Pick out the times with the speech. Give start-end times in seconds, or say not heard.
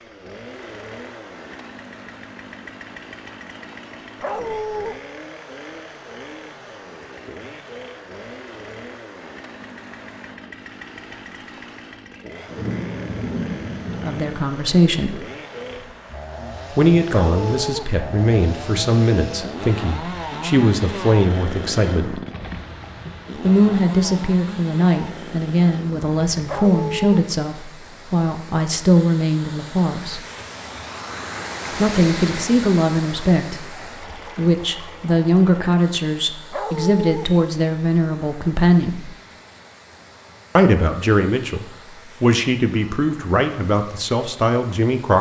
14.0-15.2, 16.7-22.2, 23.4-30.2, 31.7-39.1, 40.5-45.1.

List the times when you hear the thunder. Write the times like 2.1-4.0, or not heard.
12.4-14.4.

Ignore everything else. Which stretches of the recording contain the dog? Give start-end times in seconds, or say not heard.
4.2-5.0, 17.1-17.9, 26.4-27.2, 36.5-37.3.